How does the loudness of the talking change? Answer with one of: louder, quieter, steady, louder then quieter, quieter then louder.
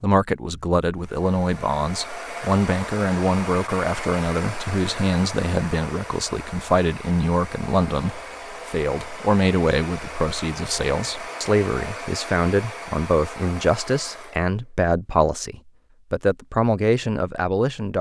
steady.